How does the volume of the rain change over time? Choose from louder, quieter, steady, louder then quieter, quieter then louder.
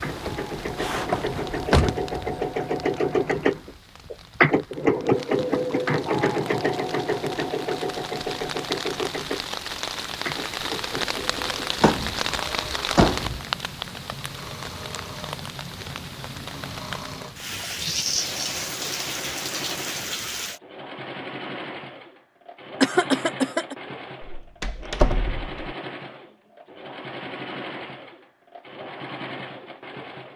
louder.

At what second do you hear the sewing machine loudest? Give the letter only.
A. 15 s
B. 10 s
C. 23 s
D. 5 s
D.